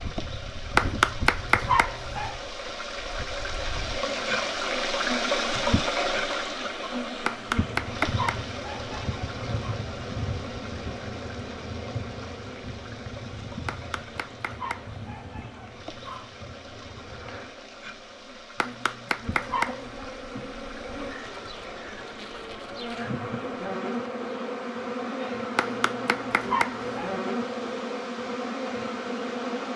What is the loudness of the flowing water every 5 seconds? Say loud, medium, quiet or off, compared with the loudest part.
loud, loud, quiet, quiet, quiet, quiet.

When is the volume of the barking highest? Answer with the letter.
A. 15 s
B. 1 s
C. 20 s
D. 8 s
B.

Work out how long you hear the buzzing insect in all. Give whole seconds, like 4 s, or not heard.
30 s.